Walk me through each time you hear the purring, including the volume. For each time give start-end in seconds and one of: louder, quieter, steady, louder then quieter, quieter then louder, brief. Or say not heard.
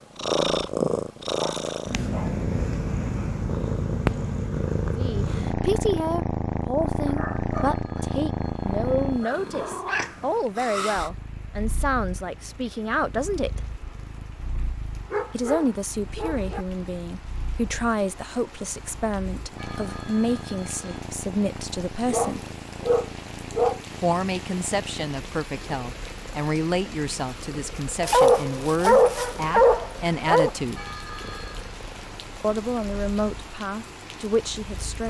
0.1-35.0 quieter.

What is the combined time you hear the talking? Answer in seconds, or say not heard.
25 s.